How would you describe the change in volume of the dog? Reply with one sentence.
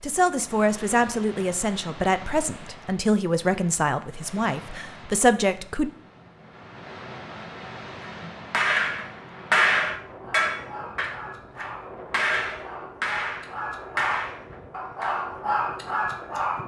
The volume of the dog goes up.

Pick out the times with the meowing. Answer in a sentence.
The meowing can't be heard in this clip.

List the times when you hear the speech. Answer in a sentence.
The speech can be heard from 0.0 to 5.9 s.